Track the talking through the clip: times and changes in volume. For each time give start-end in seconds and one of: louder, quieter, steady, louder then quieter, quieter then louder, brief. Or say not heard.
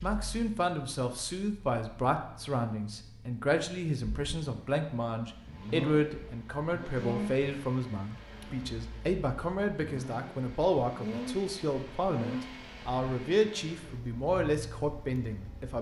0.0-15.7 steady.